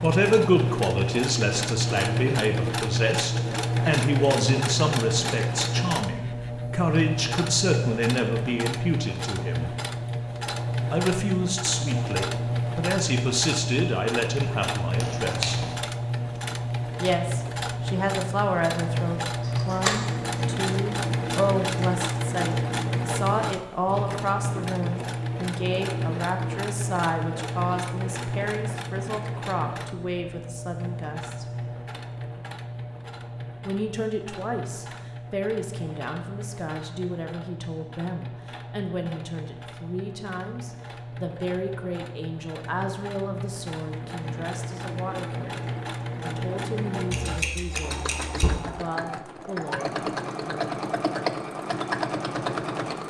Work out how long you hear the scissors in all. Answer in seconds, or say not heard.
3 s.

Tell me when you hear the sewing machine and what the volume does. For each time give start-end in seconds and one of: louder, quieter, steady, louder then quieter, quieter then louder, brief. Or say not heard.
0.0-53.0 quieter then louder.